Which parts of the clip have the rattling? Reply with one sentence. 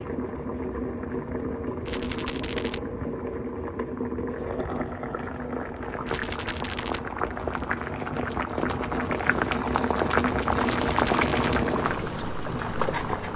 You can hear the rattling from 1.9 to 2.8 s, from 6.0 to 7.0 s and from 10.6 to 11.6 s.